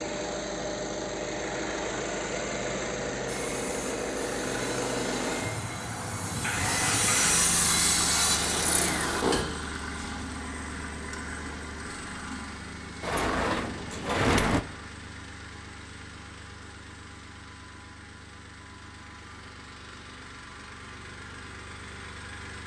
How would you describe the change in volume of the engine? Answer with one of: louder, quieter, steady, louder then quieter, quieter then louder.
quieter.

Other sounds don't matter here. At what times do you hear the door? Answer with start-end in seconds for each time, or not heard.
13.0-14.7.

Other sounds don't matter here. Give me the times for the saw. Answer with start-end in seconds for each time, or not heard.
3.2-9.4.